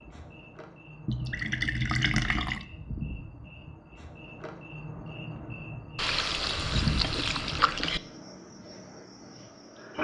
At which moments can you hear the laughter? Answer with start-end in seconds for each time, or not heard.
not heard.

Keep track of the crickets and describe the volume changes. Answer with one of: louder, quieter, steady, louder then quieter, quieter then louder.
louder then quieter.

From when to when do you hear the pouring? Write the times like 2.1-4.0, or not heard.
1.1-2.6, 6.0-8.0.